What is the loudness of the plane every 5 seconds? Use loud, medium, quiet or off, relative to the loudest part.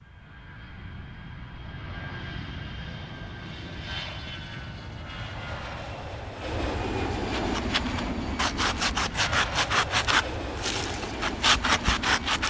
medium, loud, loud.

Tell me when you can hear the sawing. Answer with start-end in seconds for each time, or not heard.
7.3-12.4.